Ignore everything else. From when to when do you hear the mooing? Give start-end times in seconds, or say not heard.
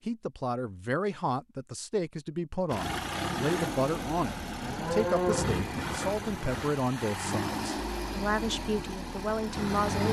4.6-6.2.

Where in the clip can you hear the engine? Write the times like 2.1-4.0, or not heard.
2.6-10.0.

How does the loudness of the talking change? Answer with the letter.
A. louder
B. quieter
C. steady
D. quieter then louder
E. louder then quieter
C.